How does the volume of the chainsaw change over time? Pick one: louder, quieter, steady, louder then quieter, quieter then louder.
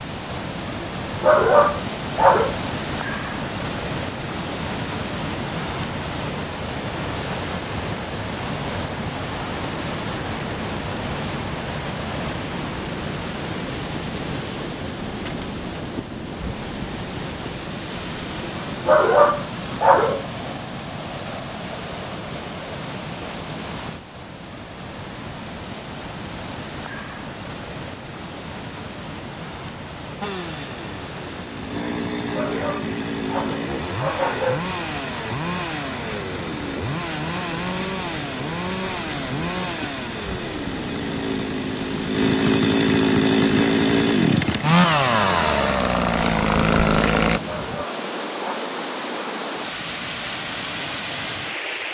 louder.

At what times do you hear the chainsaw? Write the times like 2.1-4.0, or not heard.
30.2-47.4.